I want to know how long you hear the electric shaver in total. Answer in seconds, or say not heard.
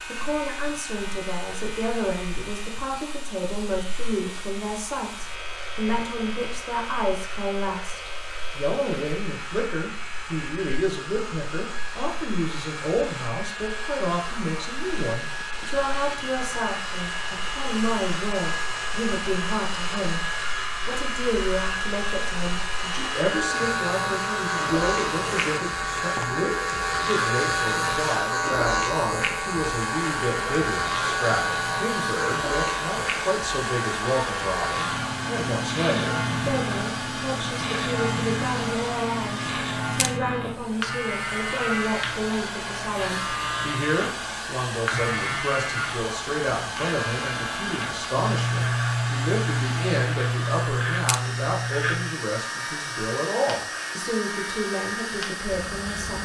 56 s.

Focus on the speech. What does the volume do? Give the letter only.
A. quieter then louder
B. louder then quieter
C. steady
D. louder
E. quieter
C.